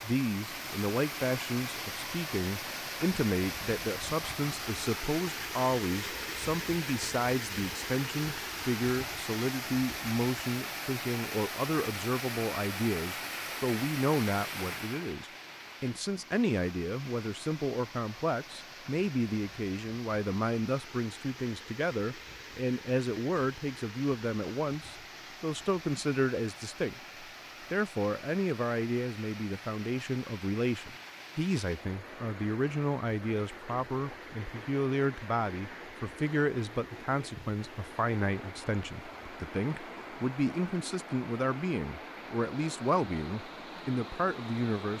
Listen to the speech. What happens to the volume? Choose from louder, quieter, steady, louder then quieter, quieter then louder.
steady.